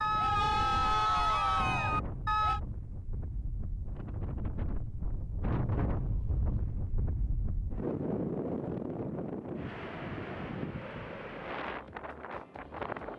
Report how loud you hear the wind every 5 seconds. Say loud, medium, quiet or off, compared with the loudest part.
medium, loud, loud.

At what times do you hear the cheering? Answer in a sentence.
You can hear the cheering from 0.0 to 2.6 s.